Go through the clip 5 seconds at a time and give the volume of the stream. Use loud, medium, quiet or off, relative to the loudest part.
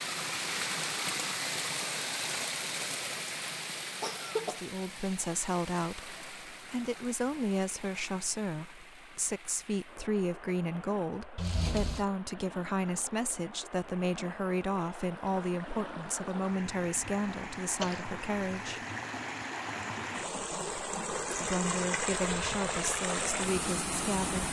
loud, quiet, quiet, medium, loud.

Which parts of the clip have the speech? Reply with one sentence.
You can hear the speech from 4.3 to 18.8 s and from 21.3 to 24.4 s.